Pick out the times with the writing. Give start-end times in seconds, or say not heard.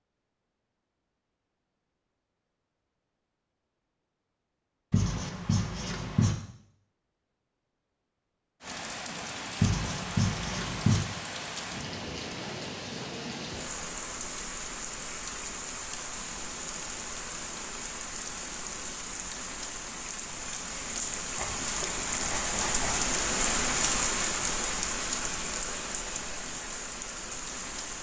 4.9-6.3, 9.6-11.0, 21.4-23.1.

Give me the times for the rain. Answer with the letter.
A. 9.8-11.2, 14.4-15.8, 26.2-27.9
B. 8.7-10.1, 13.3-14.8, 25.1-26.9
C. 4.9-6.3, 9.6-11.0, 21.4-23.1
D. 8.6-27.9
D.